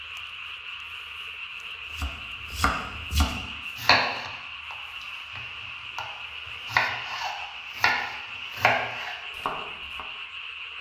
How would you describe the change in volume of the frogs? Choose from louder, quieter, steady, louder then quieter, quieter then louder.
steady.